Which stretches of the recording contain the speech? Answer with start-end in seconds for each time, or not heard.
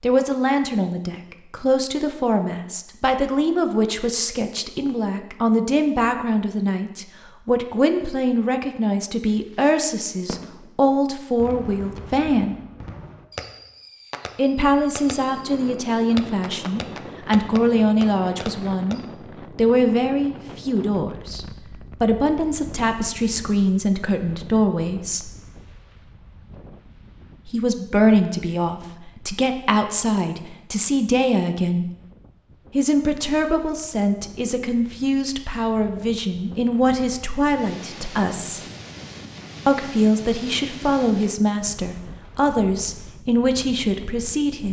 0.0-12.6, 14.3-25.3, 27.4-31.9, 32.7-38.6, 39.6-44.6.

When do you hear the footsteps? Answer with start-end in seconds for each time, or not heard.
not heard.